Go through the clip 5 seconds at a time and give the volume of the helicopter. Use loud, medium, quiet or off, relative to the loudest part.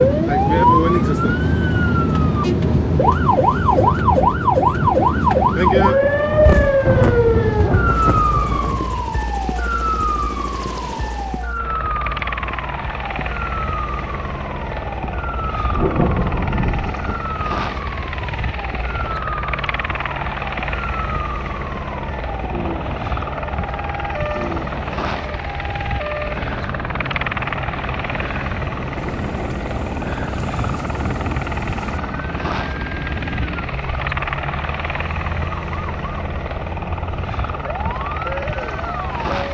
quiet, medium, loud, loud, loud, loud, loud, loud.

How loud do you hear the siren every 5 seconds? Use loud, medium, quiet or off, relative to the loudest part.
loud, loud, quiet, quiet, quiet, quiet, quiet, quiet.